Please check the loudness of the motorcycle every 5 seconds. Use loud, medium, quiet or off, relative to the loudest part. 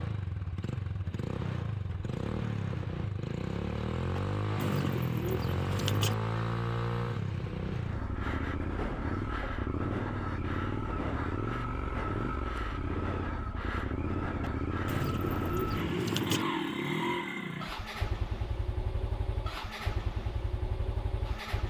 loud, loud, loud, loud, medium.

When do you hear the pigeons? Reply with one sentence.
You can hear the pigeons from 4.2 to 6.2 s and from 14.4 to 16.4 s.